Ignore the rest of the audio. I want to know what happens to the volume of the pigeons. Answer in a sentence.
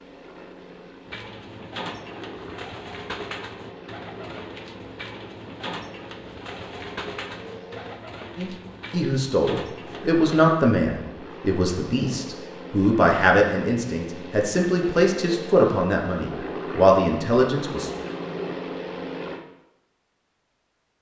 The volume of the pigeons stays about the same.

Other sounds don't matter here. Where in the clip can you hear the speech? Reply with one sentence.
You can hear the speech from 8.3 to 17.9 s.